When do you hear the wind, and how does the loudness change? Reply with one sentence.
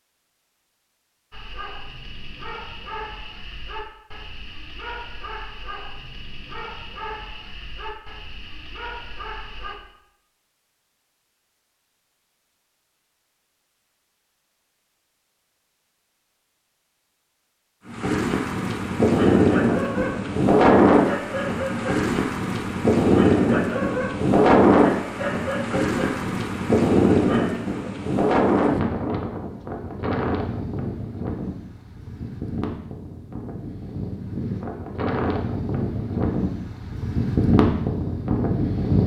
You can hear the wind from 17.9 to 39.0 s, getting quieter then louder.